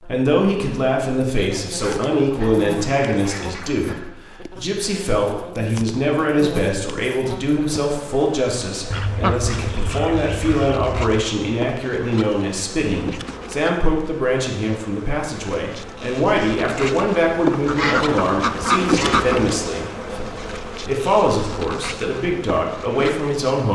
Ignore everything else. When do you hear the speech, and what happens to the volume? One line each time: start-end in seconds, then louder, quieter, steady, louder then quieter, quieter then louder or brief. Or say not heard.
0.0-23.7 steady.